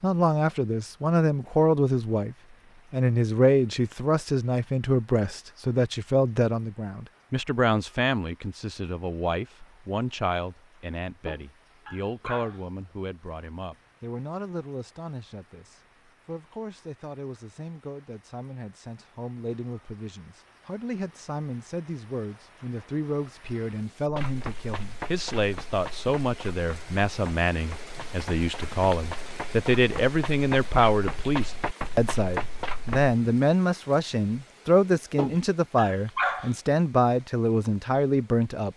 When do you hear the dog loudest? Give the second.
36 s.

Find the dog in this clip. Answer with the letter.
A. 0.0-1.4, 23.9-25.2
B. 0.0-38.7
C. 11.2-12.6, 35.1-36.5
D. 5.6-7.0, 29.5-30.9
C.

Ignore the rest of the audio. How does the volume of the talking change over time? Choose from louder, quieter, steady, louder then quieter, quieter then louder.
quieter then louder.